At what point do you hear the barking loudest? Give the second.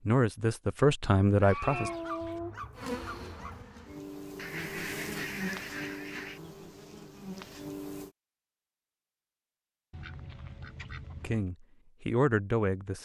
2 s.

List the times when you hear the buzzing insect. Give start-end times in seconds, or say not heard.
2.8-8.1.